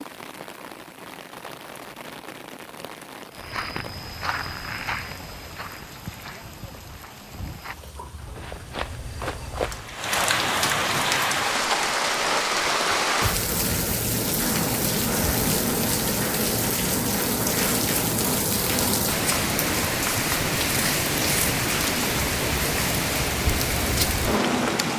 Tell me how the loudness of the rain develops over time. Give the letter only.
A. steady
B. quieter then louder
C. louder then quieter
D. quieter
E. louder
E.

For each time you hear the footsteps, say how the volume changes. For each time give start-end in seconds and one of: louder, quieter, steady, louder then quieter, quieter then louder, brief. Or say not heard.
3.4-9.9 quieter then louder.